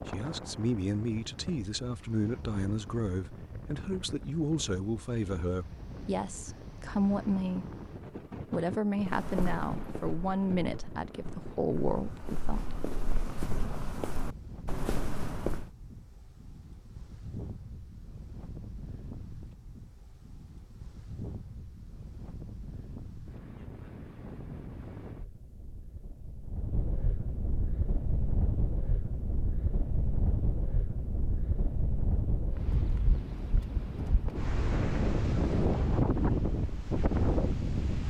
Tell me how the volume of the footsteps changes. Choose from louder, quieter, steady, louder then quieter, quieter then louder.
quieter then louder.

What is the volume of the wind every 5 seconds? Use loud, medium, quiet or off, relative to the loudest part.
quiet, quiet, quiet, quiet, quiet, medium, medium, loud.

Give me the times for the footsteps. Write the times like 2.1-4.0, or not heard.
9.0-15.7.